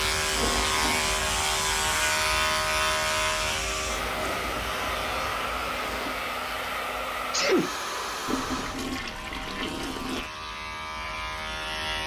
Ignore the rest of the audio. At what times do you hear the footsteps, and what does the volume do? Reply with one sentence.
You can't hear the footsteps here.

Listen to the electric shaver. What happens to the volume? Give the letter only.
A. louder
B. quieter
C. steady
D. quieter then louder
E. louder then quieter
D.